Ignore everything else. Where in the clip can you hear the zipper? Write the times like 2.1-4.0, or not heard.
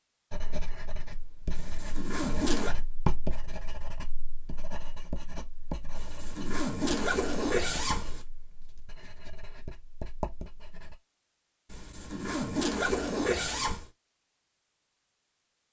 1.6-2.8, 6.0-8.2, 11.7-13.9.